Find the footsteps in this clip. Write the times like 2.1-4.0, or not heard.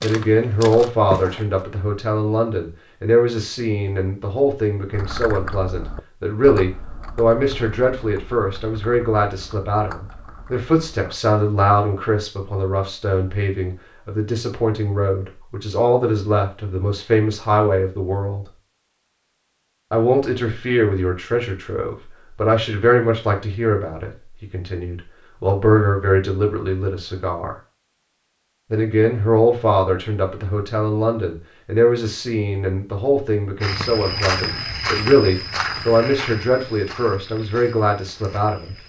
0.0-1.4, 33.6-38.8.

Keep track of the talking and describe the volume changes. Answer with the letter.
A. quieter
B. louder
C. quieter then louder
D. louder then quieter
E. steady
E.